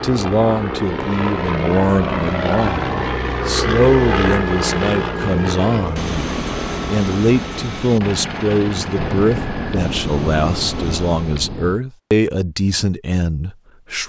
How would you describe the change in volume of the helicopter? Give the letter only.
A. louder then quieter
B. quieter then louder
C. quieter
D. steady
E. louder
C.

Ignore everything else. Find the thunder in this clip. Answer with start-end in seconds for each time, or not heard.
8.9-11.8.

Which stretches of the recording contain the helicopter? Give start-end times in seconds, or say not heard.
0.0-11.5.